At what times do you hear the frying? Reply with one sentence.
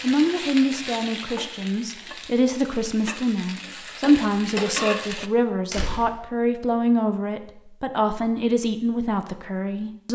The frying can be heard from 0.0 to 5.3 s.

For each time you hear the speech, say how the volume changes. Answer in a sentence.
You can hear the speech from 0.0 to 10.1 s, at a steady volume.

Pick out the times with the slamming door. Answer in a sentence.
You can hear the slamming door from 5.7 to 6.2 s.